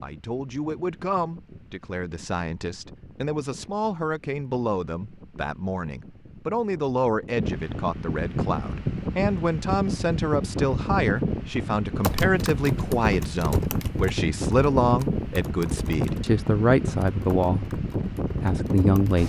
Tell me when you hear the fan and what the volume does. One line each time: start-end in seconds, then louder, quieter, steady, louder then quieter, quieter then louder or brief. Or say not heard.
0.0-19.2 louder.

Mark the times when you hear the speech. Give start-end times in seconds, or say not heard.
0.0-19.2.